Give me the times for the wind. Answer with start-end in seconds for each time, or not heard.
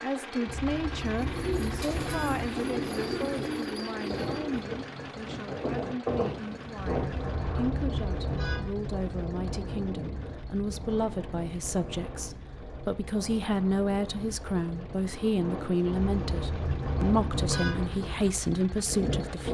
4.0-19.5.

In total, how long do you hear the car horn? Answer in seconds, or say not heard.
6 s.